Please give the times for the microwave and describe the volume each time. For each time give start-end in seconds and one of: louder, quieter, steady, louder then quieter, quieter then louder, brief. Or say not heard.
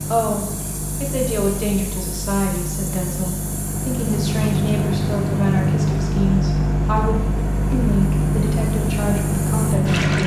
0.0-10.2 louder.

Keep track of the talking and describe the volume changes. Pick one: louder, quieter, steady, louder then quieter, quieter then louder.
steady.